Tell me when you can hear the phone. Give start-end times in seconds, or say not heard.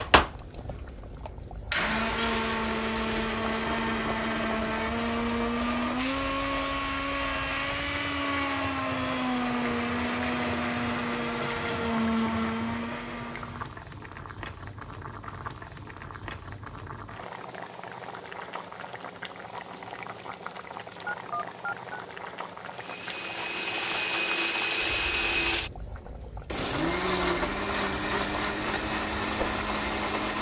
21.1-22.0.